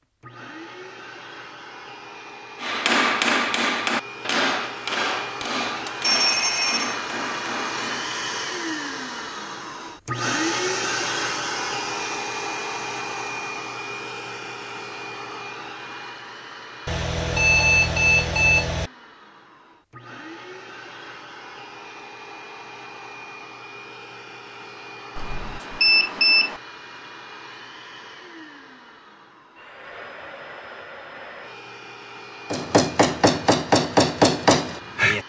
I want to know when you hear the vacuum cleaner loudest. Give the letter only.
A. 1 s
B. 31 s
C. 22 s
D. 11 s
D.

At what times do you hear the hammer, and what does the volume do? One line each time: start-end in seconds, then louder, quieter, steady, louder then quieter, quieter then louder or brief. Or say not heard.
2.6-8.2 quieter
32.5-35.2 brief.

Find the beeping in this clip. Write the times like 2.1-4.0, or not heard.
6.0-7.0, 16.9-18.9, 25.1-26.6.